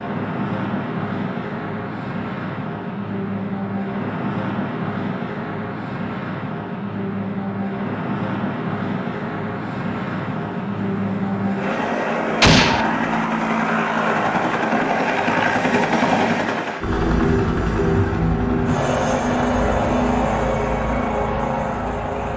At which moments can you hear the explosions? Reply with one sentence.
The explosions can be heard from 12.4 to 12.8 s.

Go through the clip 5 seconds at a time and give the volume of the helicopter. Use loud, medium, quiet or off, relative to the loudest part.
medium, medium, loud, loud, loud.